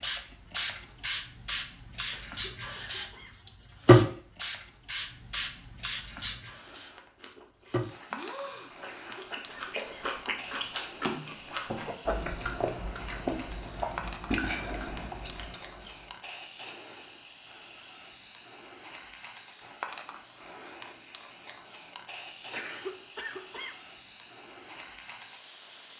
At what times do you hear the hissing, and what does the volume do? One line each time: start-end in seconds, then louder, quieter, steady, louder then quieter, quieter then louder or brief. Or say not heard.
0.0-25.9 quieter.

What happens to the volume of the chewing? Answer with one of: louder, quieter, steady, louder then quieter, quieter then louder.
louder.